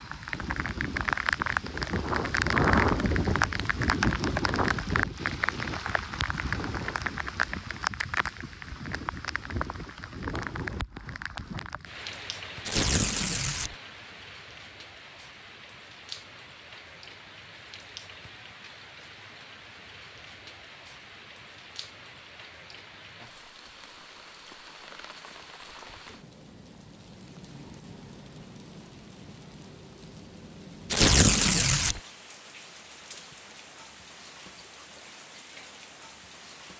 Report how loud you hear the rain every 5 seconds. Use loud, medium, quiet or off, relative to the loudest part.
loud, medium, quiet, quiet, quiet, quiet, quiet, quiet.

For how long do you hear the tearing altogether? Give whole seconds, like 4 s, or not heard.
2 s.